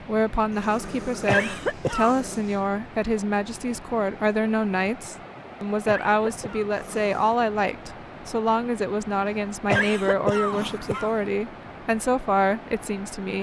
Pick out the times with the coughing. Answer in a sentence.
You can hear the coughing from 0.8 to 2.2 s, from 5.8 to 6.7 s and from 9.7 to 11.1 s.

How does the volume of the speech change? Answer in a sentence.
The volume of the speech stays about the same.